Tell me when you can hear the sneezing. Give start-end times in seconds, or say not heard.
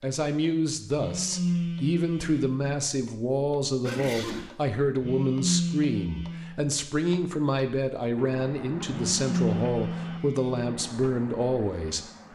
3.8-4.5.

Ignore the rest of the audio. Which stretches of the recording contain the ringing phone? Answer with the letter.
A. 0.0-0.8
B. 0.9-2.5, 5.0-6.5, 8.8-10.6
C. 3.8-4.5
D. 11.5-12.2
B.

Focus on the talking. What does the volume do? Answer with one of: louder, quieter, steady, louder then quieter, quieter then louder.
steady.